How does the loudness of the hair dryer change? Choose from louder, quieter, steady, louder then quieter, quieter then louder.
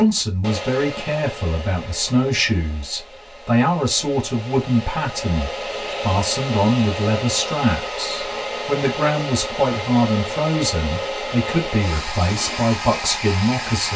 louder.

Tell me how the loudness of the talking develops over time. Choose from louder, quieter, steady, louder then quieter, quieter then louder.
steady.